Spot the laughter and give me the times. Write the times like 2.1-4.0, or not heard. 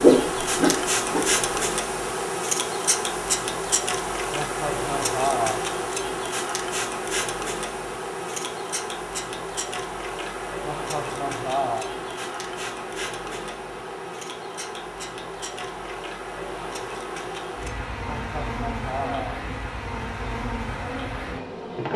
4.3-5.6, 10.6-11.9, 18.1-19.4.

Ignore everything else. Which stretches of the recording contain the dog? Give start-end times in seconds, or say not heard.
0.0-1.6.